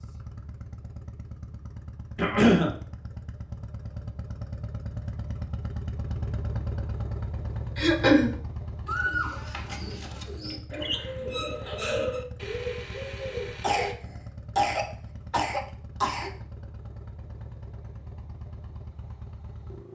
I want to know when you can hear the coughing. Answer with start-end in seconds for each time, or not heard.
2.1-2.7, 7.8-8.3, 13.6-16.3.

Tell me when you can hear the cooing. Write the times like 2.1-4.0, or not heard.
8.8-13.9.